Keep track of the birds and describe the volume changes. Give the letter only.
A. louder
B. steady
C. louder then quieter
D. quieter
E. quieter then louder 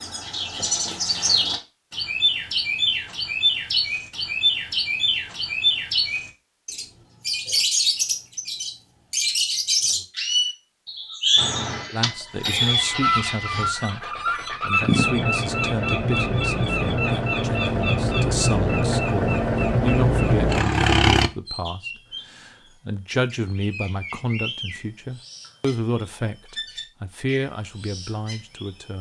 D.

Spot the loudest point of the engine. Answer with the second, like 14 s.
21 s.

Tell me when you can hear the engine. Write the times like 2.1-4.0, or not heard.
11.3-21.3.